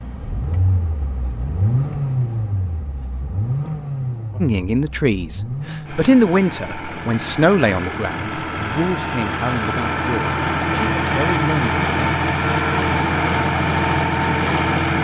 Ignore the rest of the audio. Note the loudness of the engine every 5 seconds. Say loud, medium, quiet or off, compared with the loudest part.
medium, medium, loud.